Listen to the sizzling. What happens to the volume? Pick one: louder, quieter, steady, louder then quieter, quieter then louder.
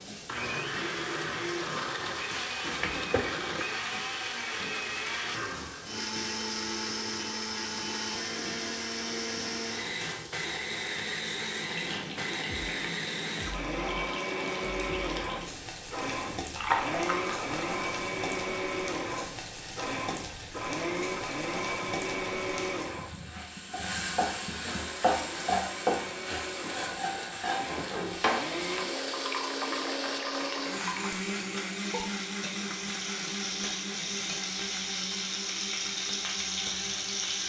louder.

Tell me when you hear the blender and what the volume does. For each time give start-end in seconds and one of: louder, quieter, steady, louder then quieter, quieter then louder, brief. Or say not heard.
0.0-23.1 steady
24.8-37.4 louder then quieter.